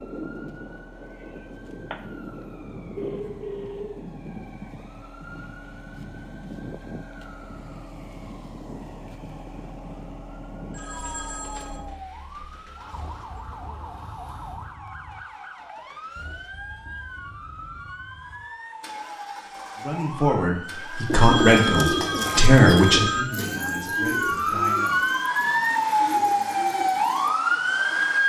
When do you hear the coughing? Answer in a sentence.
The coughing can be heard from 0.9 to 2.0 s.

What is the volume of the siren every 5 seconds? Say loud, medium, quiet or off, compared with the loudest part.
quiet, quiet, quiet, quiet, medium, loud.